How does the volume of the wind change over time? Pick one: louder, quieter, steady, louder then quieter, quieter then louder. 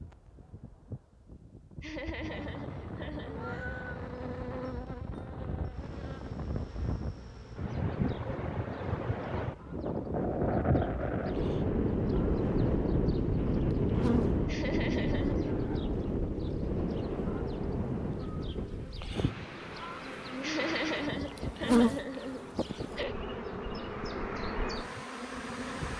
louder then quieter.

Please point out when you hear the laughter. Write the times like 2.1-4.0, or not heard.
1.8-3.4, 14.4-15.6, 20.4-23.1.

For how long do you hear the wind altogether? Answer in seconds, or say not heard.
26 s.